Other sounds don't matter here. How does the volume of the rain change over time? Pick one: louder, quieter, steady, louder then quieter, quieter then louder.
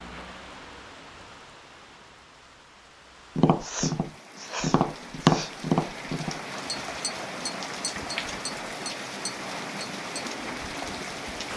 louder.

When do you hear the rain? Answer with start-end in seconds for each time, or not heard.
0.0-11.5.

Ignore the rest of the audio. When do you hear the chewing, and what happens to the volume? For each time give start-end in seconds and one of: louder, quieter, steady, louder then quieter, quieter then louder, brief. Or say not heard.
not heard.